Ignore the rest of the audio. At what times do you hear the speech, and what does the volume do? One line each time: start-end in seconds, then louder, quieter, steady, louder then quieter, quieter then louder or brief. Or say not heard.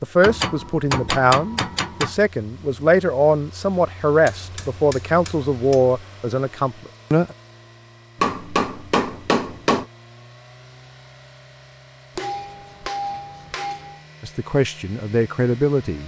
0.0-7.3 steady
14.2-16.0 brief.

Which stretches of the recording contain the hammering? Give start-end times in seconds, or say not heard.
0.2-2.1, 4.2-6.0, 8.2-9.8, 12.2-14.1.